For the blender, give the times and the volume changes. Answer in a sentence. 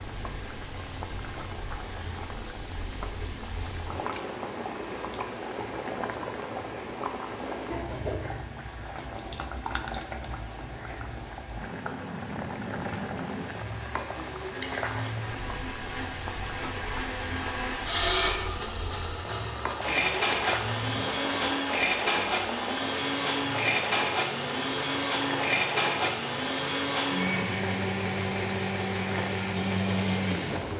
The blender can be heard from 0.0 to 30.7 s, getting louder.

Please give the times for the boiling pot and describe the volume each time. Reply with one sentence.
The boiling pot can be heard from 0.0 to 30.7 s, at a steady volume.